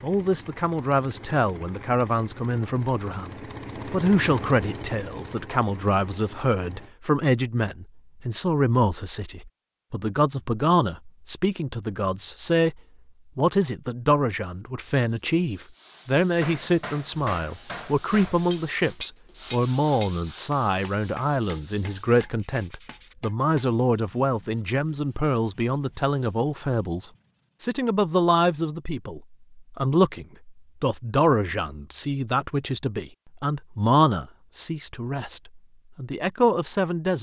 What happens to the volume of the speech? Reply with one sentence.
The loudness of the speech stays about the same.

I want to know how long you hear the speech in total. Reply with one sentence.
You can hear the speech for 37 seconds altogether.